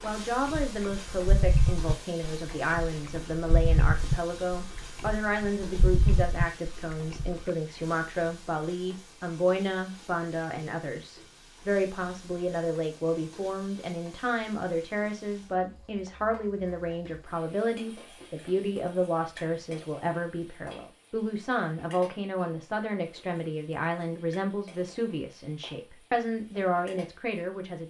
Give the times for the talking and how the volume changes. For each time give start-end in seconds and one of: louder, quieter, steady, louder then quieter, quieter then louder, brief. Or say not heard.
0.0-27.8 steady.